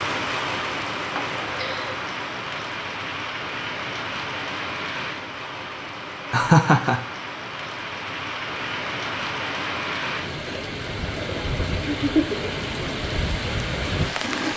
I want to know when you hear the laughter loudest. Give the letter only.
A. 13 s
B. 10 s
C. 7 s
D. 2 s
C.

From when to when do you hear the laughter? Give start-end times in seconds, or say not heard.
1.1-2.0, 6.3-7.0, 11.9-12.5.